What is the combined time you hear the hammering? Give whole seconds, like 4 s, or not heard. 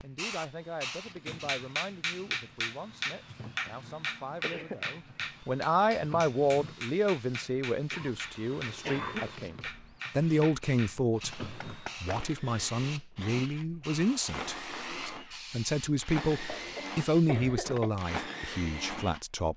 11 s.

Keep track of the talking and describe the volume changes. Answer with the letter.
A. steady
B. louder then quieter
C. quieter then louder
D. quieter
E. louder
E.